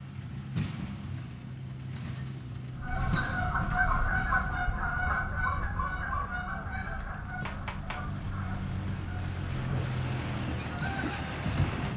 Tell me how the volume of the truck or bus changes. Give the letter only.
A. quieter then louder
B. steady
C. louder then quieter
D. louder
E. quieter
A.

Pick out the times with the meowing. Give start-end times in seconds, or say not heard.
7.4-8.1.